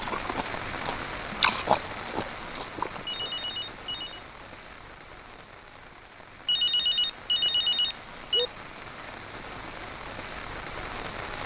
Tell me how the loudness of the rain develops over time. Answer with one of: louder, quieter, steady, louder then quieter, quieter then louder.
quieter then louder.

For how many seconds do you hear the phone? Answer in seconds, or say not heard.
3 s.